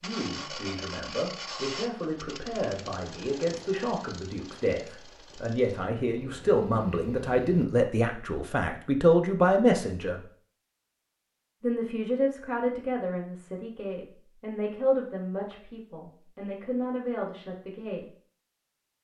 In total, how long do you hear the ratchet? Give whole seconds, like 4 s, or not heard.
not heard.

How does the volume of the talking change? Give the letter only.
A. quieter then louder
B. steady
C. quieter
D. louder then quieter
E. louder
D.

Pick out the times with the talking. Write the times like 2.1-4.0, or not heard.
0.0-10.2, 11.6-18.1.